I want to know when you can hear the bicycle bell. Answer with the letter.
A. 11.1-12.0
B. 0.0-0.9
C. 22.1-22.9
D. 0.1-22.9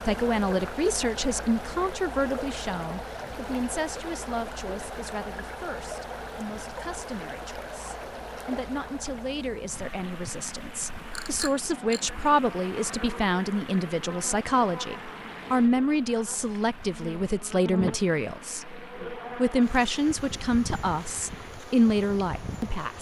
A.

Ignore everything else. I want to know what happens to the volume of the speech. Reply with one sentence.
The loudness of the speech goes down, then up.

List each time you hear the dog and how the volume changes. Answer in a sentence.
The dog can't be heard in this clip.